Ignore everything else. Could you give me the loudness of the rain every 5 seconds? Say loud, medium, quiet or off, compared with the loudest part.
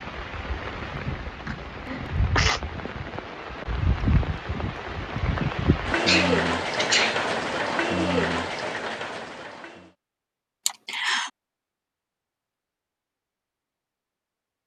medium, loud, off.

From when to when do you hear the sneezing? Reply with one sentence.
The sneezing can be heard from 0.9 to 2.6 s, from 5.6 to 7.5 s and from 10.7 to 11.3 s.